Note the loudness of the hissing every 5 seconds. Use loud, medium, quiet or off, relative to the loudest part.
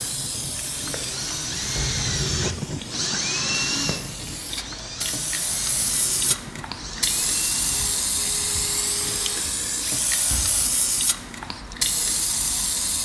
medium, loud, loud.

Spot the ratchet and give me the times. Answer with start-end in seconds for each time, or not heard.
not heard.